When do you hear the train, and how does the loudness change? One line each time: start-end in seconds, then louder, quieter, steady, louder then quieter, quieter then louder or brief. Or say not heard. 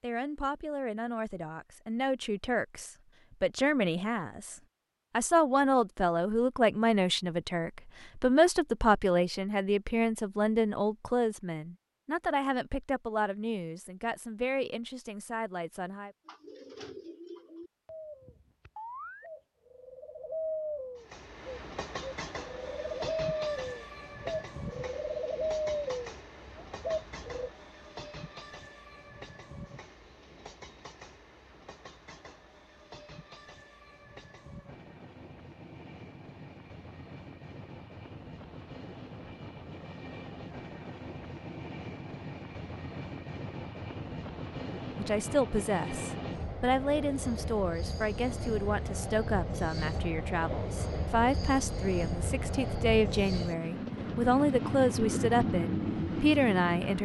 20.9-57.0 quieter then louder.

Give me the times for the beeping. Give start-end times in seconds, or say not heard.
not heard.